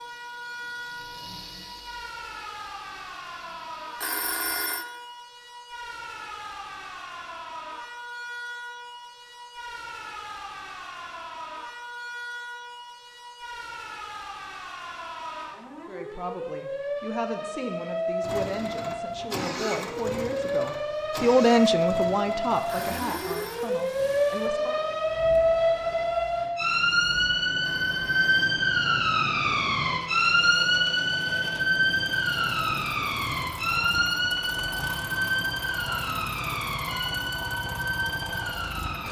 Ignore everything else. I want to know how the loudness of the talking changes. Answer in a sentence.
The volume of the talking goes up, then down.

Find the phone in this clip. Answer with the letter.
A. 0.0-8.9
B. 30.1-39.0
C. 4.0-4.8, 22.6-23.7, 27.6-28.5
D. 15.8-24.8
C.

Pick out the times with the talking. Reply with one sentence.
You can hear the talking from 15.8 to 24.8 s.